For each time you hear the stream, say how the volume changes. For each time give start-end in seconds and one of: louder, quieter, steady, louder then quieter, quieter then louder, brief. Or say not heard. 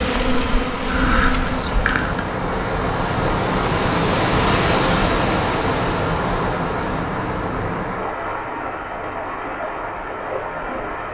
0.1-11.0 louder then quieter.